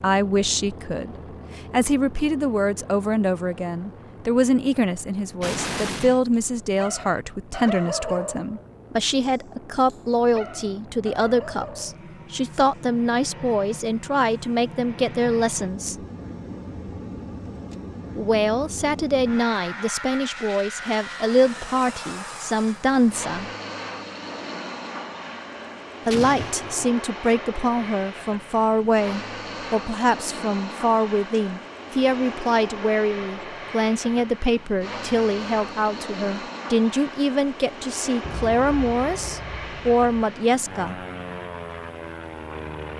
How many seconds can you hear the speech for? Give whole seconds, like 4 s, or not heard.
36 s.